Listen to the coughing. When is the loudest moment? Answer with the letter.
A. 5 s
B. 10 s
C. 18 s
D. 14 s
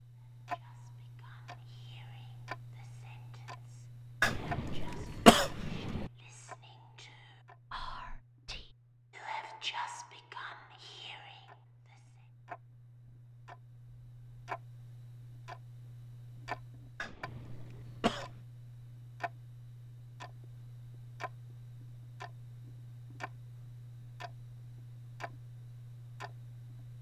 A.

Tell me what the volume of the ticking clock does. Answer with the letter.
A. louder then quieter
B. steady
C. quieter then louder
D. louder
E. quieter
C.